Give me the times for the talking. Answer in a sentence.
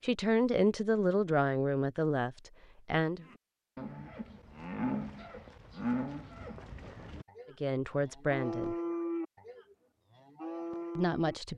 The talking can be heard from 0.0 to 3.2 s, from 7.6 to 8.8 s and from 10.9 to 11.5 s.